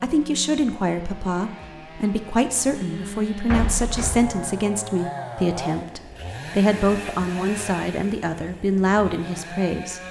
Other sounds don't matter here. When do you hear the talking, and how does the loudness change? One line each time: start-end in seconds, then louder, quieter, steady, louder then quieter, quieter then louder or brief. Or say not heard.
0.0-10.0 steady.